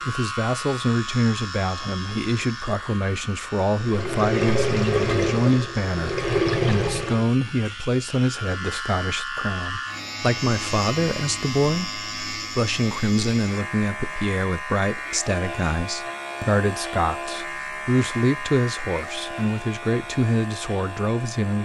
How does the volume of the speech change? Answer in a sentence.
The loudness of the speech stays about the same.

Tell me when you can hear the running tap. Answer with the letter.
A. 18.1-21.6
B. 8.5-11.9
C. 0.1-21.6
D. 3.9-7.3
D.